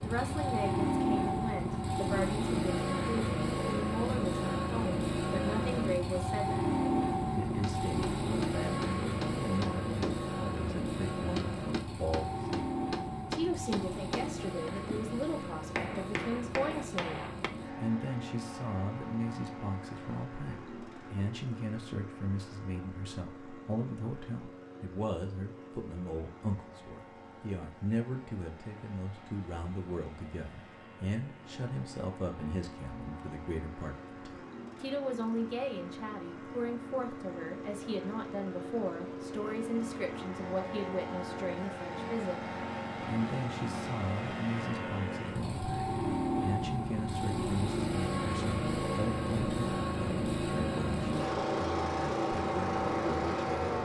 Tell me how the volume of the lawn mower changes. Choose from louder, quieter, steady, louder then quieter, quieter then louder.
quieter then louder.